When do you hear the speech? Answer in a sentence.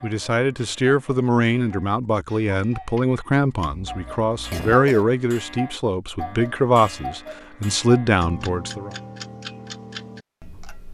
The speech can be heard from 0.0 to 8.9 s.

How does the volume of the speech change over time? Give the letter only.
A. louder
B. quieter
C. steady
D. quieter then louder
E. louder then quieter
C.